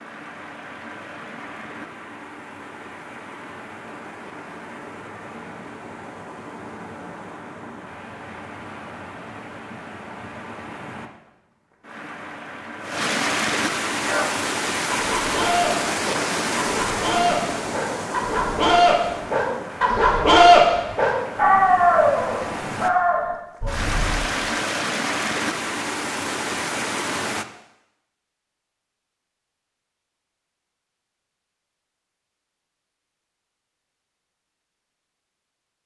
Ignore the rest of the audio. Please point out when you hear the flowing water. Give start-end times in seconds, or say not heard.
0.0-27.4.